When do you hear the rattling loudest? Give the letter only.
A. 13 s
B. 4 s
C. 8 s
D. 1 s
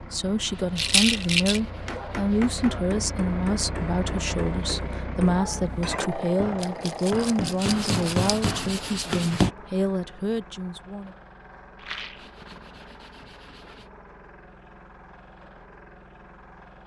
D.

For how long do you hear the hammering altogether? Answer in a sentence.
The hammering can be heard for 8 seconds in total.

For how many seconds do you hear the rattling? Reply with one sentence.
The rattling can be heard for 3 seconds in total.